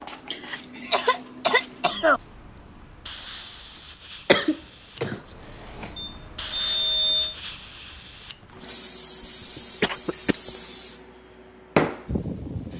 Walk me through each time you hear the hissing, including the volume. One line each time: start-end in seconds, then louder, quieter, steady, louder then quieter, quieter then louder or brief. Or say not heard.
0.0-12.7 louder.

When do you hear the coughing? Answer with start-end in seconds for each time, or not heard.
0.2-2.2, 4.2-5.9, 9.6-10.5.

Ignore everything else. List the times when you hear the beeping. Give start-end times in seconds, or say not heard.
6.0-7.3.